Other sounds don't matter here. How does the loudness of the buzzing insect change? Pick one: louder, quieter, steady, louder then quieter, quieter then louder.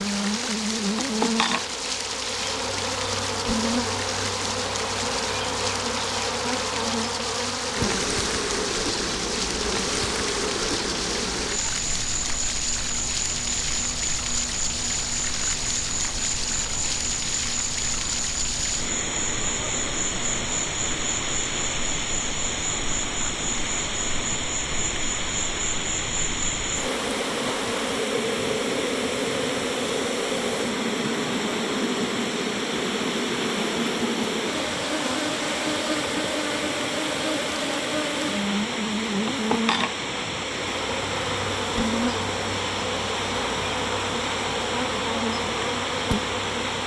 steady.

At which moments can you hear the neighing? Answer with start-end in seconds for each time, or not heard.
not heard.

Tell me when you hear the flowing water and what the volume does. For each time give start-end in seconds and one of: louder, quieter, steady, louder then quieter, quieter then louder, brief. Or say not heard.
0.0-46.8 steady.